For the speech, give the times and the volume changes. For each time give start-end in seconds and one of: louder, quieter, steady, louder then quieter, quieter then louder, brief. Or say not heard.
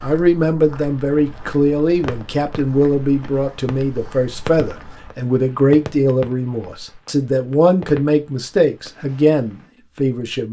0.0-10.4 steady.